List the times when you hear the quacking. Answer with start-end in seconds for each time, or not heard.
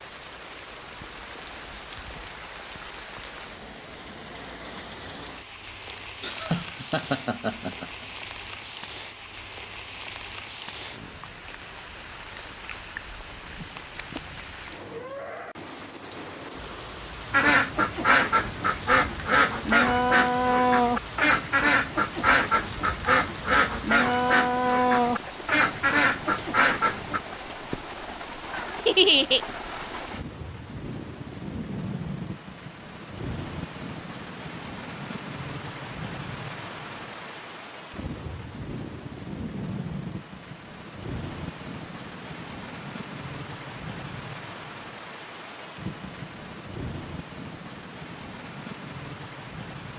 17.3-27.2.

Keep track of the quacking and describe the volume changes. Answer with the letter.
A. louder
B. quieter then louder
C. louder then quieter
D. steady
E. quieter
D.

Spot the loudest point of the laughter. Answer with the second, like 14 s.
29 s.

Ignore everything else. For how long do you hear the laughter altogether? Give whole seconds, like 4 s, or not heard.
3 s.